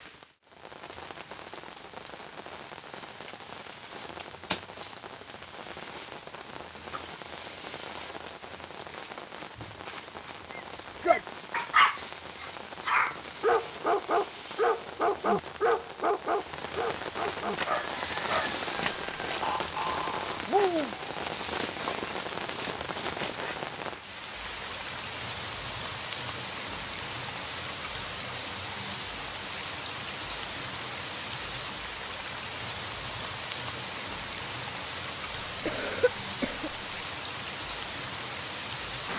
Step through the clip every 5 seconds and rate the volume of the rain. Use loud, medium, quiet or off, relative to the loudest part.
medium, medium, medium, loud, loud, loud, loud, loud.